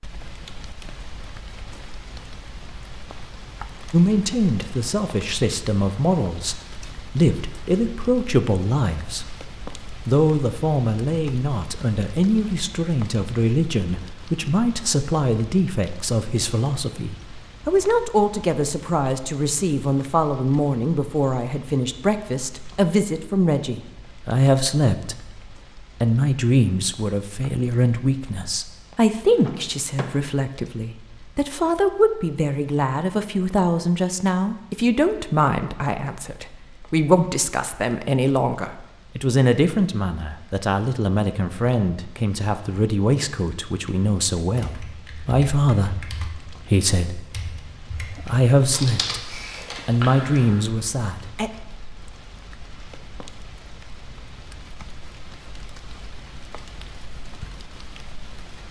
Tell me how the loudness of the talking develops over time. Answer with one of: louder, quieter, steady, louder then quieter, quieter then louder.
steady.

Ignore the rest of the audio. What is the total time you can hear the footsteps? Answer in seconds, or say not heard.
not heard.